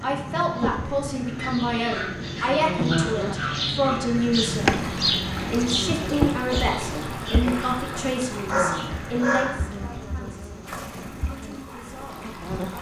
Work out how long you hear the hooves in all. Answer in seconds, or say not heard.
not heard.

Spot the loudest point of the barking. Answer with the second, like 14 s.
9 s.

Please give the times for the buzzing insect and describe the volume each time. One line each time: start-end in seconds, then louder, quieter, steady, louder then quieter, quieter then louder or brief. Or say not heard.
0.0-12.7 louder then quieter.